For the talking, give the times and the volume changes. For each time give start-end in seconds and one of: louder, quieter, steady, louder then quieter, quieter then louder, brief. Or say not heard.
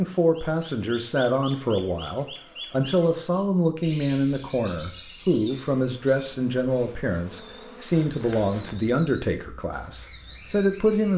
0.0-11.1 steady.